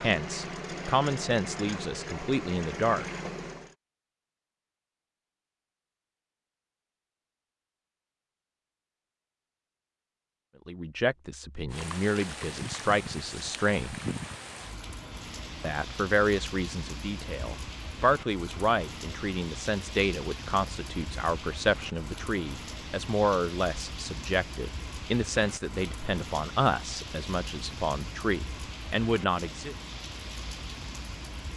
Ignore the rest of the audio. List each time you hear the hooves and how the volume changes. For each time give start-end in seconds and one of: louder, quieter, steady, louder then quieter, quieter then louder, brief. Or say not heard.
not heard.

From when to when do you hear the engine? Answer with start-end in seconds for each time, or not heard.
0.0-3.8.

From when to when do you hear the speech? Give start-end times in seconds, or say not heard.
0.0-3.0, 10.7-13.9, 15.6-29.8.